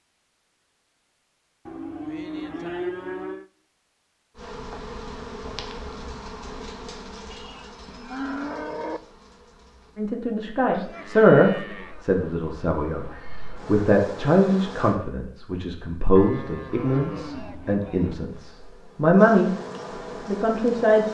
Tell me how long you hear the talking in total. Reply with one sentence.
The talking can be heard for 10 seconds in total.